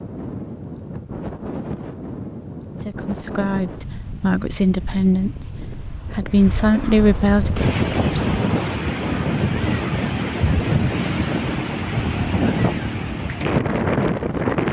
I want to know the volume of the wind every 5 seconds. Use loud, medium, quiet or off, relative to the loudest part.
medium, loud, loud.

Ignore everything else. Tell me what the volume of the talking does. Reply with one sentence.
The loudness of the talking goes up.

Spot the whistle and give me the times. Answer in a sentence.
You can't hear the whistle here.